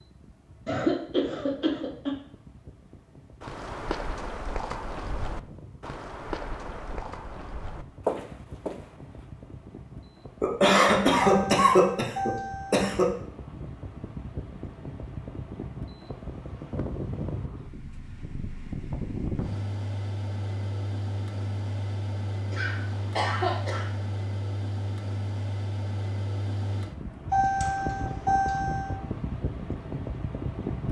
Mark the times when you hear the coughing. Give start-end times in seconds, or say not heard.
0.7-2.1, 10.4-13.1, 22.5-23.9.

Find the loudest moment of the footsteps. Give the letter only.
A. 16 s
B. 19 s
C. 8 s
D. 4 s
C.